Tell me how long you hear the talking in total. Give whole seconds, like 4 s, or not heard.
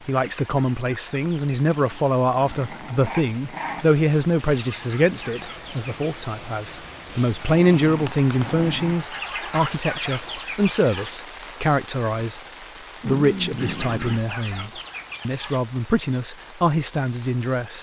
17 s.